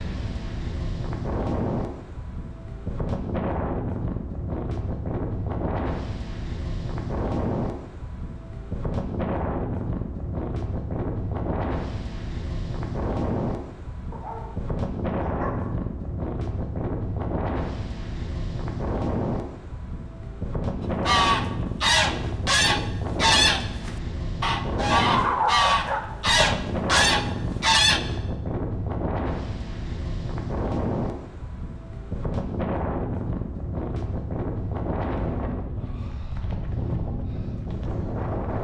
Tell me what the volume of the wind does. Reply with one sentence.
The volume of the wind stays about the same.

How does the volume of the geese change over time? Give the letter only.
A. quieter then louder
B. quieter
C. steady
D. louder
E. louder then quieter
C.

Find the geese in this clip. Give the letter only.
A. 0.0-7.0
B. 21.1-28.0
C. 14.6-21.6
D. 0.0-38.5
B.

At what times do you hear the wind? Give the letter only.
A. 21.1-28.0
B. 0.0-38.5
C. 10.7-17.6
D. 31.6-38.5
B.